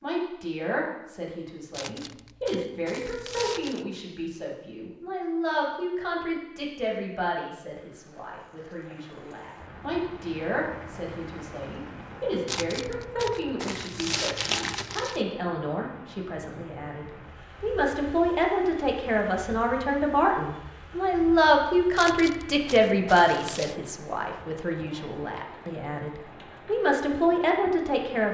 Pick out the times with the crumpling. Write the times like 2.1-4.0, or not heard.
1.7-3.9, 12.4-15.2, 21.9-23.8.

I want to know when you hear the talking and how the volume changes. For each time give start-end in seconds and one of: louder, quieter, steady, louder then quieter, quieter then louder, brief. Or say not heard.
0.0-28.2 louder.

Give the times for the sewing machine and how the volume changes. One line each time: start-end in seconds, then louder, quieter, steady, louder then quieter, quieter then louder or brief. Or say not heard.
not heard.